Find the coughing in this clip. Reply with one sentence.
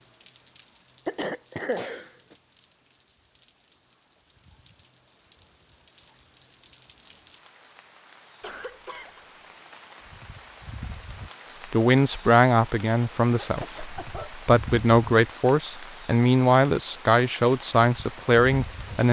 The coughing can be heard from 1.1 to 2.4 s, from 8.4 to 9.3 s and from 13.4 to 14.3 s.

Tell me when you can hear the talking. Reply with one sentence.
The talking can be heard from 11.7 to 19.0 s.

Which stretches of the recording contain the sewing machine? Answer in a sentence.
You can't hear the sewing machine here.